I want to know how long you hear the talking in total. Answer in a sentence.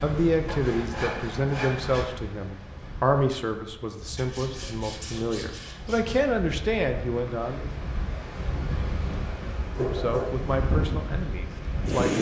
You can hear the talking for 10 seconds altogether.